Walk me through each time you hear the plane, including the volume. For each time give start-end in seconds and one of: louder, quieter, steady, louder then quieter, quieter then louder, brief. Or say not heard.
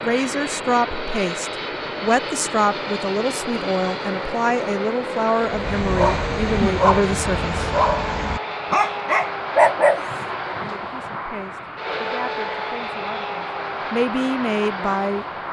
0.0-15.4 steady.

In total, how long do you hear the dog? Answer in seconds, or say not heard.
6 s.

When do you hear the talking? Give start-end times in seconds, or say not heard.
0.0-7.7, 10.6-15.2.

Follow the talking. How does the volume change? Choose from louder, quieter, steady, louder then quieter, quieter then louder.
quieter then louder.